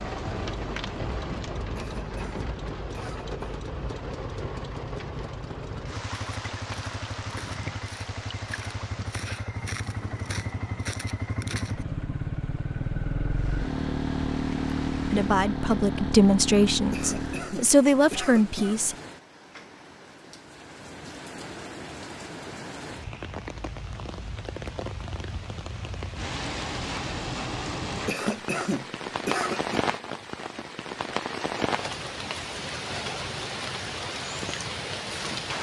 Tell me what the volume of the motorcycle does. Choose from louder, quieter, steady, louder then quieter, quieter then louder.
louder.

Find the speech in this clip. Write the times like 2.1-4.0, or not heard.
15.1-18.9.